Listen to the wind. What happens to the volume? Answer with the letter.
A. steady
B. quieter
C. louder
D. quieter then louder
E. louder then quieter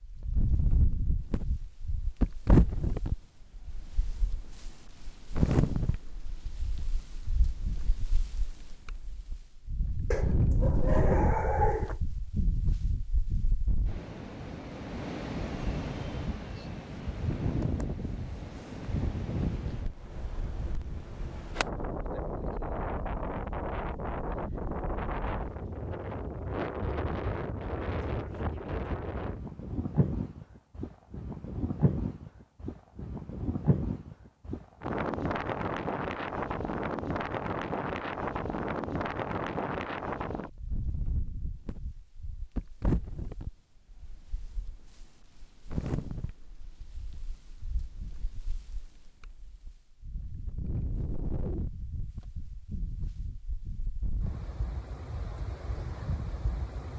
B.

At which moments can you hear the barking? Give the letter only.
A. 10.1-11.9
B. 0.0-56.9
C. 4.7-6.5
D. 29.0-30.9
A.